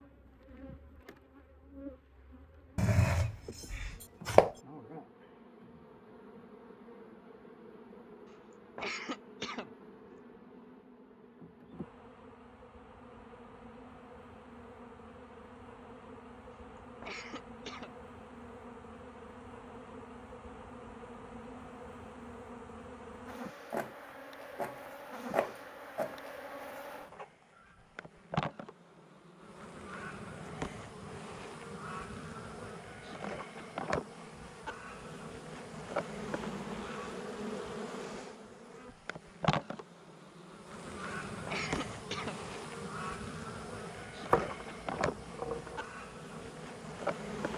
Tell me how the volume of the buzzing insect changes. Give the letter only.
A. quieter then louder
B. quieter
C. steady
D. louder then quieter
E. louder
E.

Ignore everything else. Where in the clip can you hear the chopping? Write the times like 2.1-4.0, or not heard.
2.8-4.5, 23.7-26.2, 44.2-45.8.